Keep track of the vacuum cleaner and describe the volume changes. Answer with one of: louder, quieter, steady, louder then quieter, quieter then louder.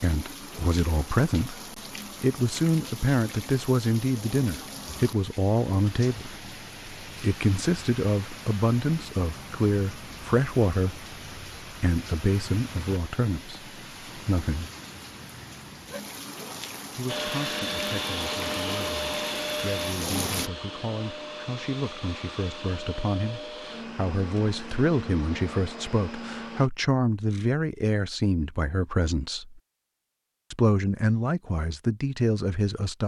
quieter.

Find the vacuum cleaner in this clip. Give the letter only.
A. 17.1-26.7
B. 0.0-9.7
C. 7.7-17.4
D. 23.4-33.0
A.